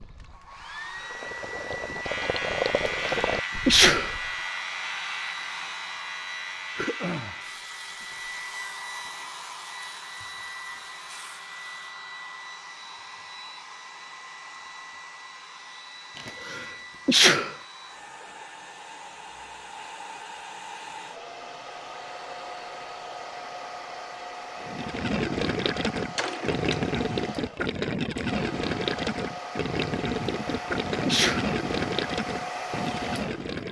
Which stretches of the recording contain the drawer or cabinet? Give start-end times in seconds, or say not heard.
26.1-26.8.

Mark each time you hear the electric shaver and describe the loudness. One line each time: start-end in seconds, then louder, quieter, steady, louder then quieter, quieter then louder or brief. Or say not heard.
2.0-11.8 quieter.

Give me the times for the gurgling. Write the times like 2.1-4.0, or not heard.
0.0-4.3, 24.6-33.6.